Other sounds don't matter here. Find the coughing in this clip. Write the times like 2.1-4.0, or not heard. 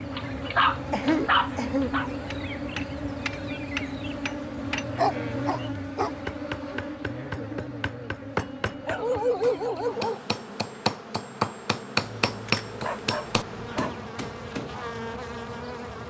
0.9-2.0.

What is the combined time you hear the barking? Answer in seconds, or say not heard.
7 s.